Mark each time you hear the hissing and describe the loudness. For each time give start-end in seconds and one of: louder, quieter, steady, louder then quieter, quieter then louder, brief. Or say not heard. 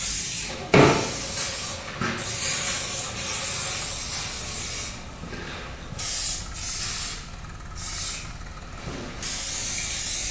0.0-10.2 quieter.